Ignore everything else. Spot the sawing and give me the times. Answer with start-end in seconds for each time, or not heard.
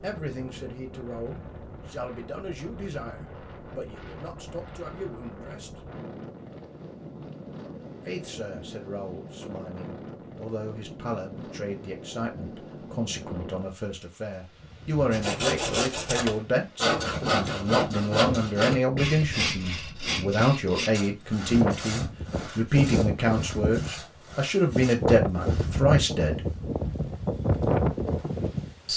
15.1-25.7.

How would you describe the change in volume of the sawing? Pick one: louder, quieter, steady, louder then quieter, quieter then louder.
quieter.